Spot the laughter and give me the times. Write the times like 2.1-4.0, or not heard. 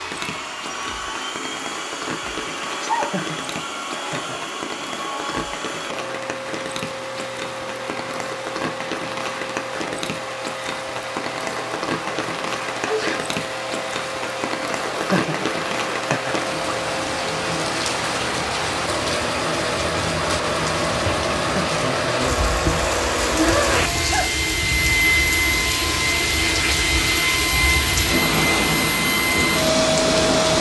3.0-4.3, 14.9-16.4, 21.4-21.8.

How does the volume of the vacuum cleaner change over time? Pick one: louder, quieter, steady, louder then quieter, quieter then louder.
louder.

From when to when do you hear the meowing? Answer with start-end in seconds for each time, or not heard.
not heard.